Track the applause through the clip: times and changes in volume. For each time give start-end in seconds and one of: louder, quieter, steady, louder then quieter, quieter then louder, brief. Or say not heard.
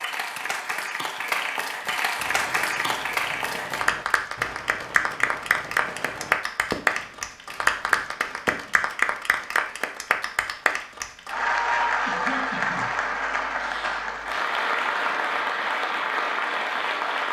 0.0-17.2 steady.